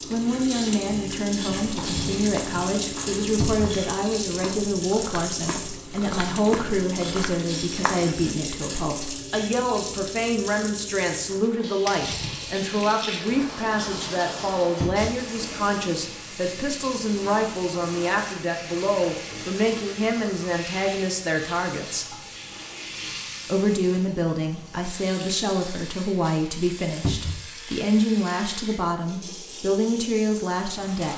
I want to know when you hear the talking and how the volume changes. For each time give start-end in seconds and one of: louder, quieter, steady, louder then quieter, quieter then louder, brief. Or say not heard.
0.1-22.1 steady
23.4-31.1 steady.